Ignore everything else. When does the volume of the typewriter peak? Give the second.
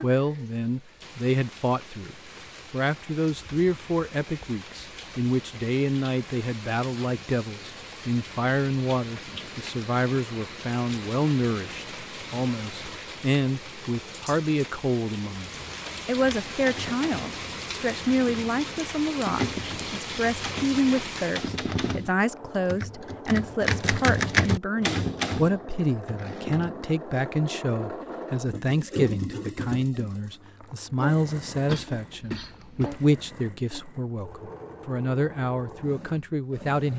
24 s.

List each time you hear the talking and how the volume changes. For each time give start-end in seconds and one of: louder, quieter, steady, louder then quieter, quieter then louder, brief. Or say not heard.
0.0-36.9 steady.